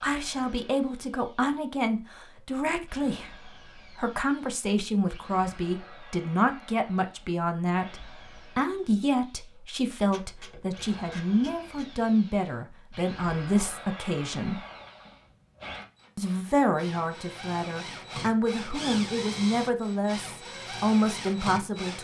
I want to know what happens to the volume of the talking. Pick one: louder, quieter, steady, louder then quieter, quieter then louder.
steady.